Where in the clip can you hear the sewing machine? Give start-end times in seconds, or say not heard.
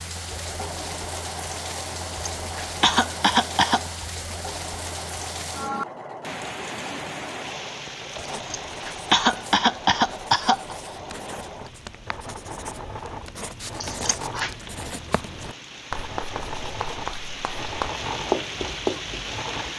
0.0-19.7.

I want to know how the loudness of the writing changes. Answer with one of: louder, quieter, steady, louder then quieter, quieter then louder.
louder.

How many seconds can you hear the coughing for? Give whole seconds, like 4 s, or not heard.
5 s.